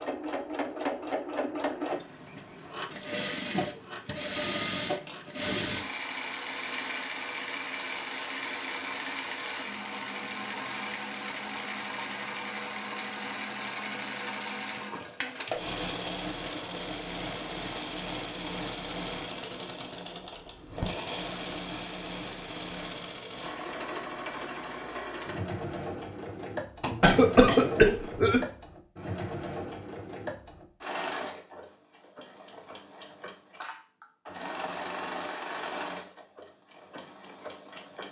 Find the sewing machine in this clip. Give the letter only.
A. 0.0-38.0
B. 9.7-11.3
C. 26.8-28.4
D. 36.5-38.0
A.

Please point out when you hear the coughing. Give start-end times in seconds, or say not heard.
26.8-28.4.